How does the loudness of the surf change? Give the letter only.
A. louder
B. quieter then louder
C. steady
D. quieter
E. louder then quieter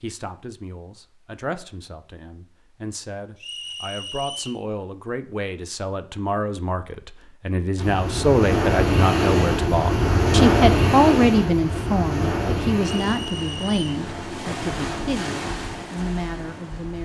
D.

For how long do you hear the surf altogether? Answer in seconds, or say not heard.
9 s.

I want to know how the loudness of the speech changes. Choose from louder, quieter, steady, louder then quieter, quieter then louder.
louder then quieter.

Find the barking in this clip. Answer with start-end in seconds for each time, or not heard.
not heard.